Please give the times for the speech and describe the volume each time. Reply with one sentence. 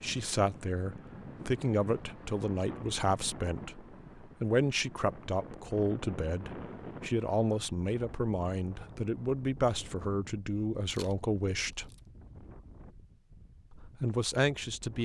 You can hear the speech from 0.0 to 11.9 s, at a steady volume; and briefly from 13.7 to 14.9 s.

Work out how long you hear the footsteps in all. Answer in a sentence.
You can't hear the footsteps here.